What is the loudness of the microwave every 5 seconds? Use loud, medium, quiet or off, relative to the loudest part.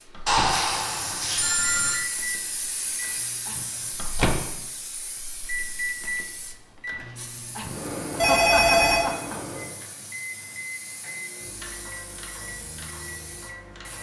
loud, loud, medium.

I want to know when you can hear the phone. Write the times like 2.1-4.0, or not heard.
0.2-2.0, 8.2-9.1.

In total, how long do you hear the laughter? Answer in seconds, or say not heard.
3 s.